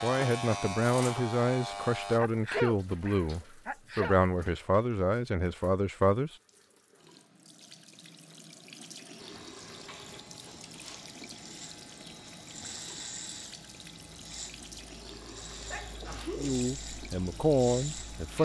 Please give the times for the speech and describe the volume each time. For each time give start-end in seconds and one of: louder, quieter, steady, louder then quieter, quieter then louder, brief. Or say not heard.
0.0-6.3 steady
16.4-18.4 brief.